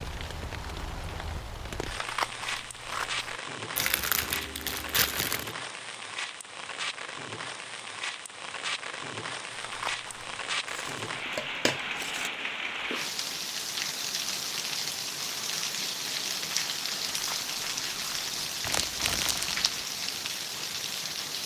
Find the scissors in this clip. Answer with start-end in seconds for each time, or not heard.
1.9-3.4, 9.5-10.4, 17.1-18.3.